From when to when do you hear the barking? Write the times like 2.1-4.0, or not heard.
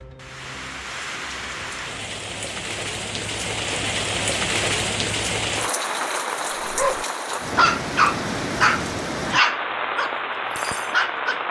6.6-11.4.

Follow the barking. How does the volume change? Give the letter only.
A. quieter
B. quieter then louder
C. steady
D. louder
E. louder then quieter
A.